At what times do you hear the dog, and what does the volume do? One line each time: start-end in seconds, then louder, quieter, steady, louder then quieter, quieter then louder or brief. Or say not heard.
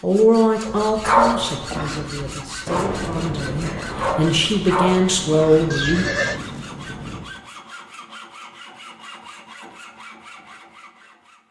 0.7-5.9 quieter then louder.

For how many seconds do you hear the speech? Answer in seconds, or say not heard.
6 s.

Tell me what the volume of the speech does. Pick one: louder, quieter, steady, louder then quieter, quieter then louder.
quieter then louder.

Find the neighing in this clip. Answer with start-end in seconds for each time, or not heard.
5.7-6.4.